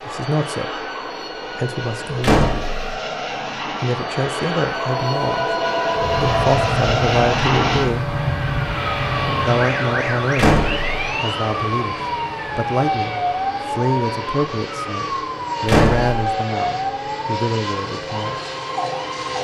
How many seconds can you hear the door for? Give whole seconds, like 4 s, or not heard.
2 s.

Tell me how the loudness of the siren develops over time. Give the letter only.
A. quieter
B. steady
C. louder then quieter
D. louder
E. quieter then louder
B.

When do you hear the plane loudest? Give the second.
7 s.